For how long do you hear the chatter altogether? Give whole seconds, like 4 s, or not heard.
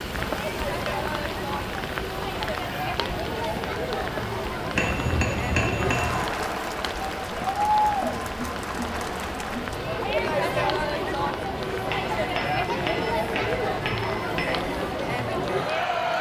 16 s.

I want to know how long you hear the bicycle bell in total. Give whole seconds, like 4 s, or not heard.
4 s.